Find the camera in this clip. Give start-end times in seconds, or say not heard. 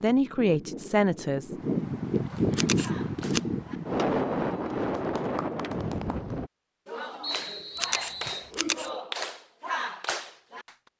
2.5-3.4, 7.8-8.9.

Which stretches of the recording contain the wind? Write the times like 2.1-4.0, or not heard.
0.0-6.5.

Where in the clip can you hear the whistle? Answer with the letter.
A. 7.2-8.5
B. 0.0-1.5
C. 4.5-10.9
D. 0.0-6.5
A.